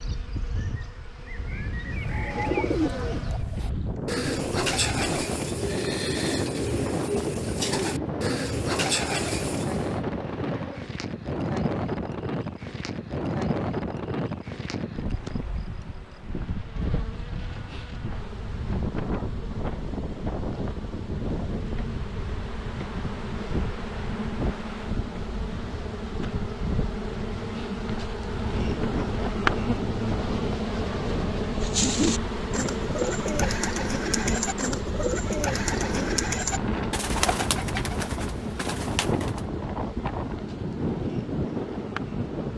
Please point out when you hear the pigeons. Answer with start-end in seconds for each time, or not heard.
1.9-10.0, 31.6-39.5.